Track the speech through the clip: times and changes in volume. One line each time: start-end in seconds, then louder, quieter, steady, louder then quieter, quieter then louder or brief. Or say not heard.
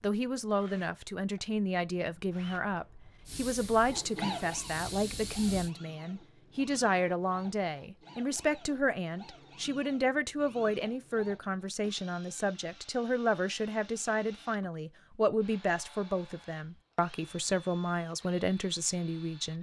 0.0-19.5 steady.